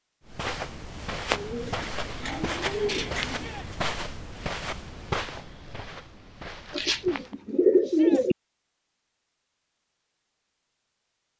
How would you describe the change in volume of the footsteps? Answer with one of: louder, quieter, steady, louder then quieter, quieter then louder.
quieter.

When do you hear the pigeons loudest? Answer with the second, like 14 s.
8 s.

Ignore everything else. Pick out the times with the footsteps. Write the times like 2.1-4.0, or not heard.
0.2-7.3.